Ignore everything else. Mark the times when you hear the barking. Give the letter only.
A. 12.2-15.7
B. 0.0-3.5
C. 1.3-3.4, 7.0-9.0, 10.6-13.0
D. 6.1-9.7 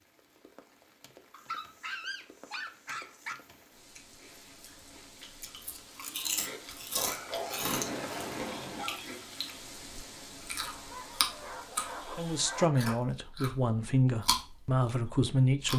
C.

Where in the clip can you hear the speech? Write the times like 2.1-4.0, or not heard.
12.2-15.7.